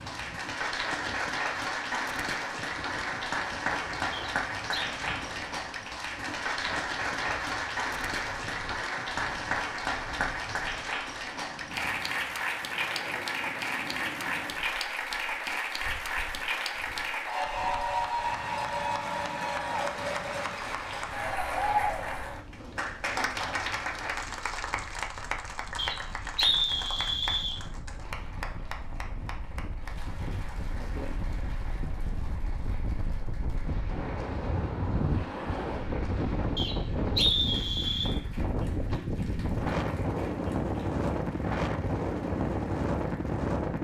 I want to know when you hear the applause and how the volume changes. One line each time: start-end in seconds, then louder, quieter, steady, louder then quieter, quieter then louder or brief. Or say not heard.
0.0-43.7 quieter.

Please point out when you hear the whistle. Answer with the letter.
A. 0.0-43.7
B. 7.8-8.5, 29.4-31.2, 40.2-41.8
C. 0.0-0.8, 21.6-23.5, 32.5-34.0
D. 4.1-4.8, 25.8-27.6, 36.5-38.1
D.